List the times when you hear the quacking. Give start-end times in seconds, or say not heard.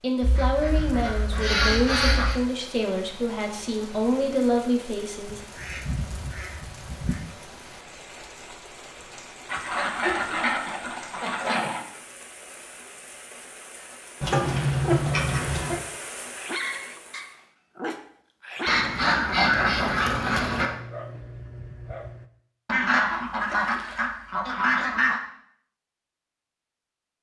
0.2-2.4, 5.2-7.2, 9.4-11.8, 14.2-15.8, 18.6-20.7, 22.6-25.2.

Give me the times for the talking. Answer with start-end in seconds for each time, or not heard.
0.0-5.4.